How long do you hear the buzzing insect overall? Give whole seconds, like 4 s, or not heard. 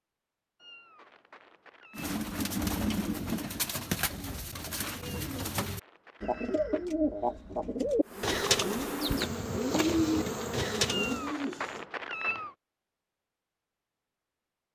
3 s.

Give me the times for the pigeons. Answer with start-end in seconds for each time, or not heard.
1.9-11.8.